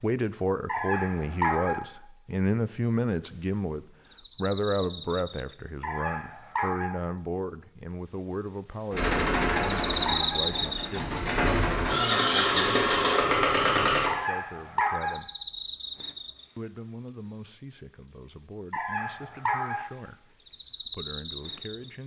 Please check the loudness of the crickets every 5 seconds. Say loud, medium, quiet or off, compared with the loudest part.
quiet, medium, loud, medium, medium.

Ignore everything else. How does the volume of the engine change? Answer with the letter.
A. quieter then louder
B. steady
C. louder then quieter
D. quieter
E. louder
A.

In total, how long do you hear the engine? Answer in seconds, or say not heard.
5 s.